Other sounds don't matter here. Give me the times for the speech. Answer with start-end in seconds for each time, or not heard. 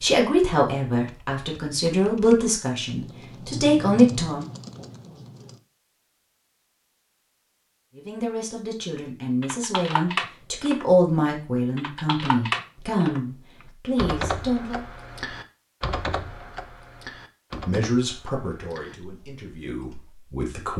0.0-4.5, 8.0-14.8, 17.5-20.7.